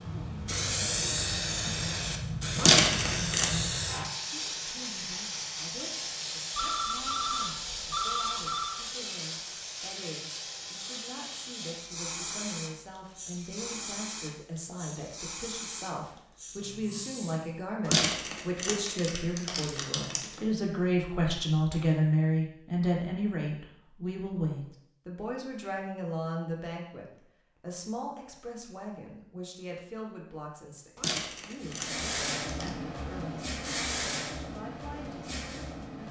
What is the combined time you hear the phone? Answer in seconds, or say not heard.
2 s.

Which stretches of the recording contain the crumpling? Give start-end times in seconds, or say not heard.
2.5-3.5, 17.9-20.4, 30.9-32.7.